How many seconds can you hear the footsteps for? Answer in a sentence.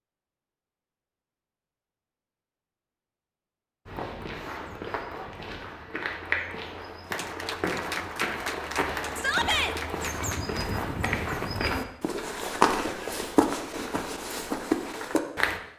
You can hear the footsteps for 12 seconds altogether.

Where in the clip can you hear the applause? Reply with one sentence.
You can hear the applause from 7.0 to 10.7 s.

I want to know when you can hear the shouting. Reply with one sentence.
You can hear the shouting from 9.2 to 9.8 s.